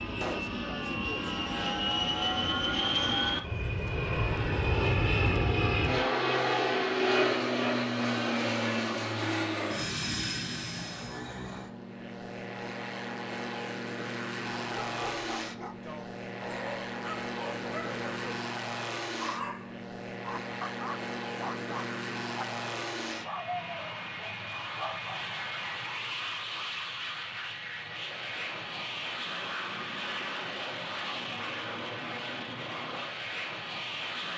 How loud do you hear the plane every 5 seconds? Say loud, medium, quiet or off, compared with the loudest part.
loud, loud, medium, medium, medium, medium, medium.